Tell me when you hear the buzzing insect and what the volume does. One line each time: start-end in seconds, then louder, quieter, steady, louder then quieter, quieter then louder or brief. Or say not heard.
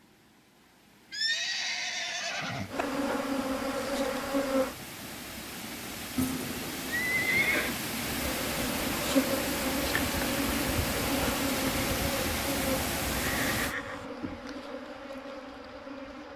2.7-4.8 brief
8.2-16.3 quieter.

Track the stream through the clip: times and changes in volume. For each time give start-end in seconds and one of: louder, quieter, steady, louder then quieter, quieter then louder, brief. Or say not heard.
0.0-13.8 louder.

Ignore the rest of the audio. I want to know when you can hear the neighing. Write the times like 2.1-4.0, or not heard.
1.1-2.9, 6.2-7.8, 13.2-14.1.